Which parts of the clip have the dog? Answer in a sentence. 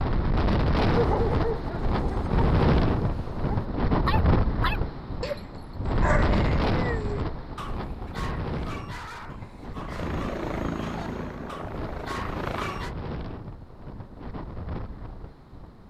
The dog can be heard from 0.8 to 12.9 s.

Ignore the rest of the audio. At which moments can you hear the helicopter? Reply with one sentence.
The helicopter can be heard from 9.8 to 12.9 s.